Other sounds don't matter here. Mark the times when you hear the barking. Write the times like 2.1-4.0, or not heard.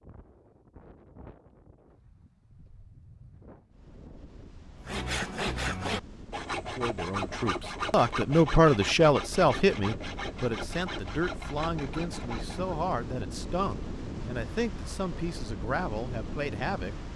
not heard.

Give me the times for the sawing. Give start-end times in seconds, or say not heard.
4.8-12.8.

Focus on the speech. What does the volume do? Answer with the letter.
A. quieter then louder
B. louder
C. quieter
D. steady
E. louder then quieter
C.